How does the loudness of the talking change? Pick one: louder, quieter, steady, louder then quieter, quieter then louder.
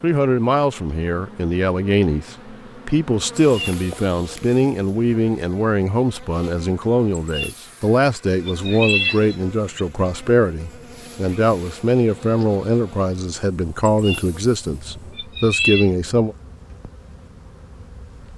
steady.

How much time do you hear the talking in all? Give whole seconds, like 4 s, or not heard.
16 s.